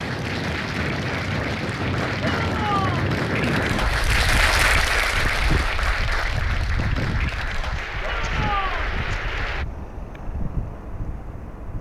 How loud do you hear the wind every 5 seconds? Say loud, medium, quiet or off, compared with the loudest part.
loud, medium, medium.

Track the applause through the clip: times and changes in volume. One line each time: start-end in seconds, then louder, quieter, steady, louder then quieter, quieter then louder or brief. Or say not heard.
0.0-9.7 louder then quieter.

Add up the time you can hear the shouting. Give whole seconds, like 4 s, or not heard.
2 s.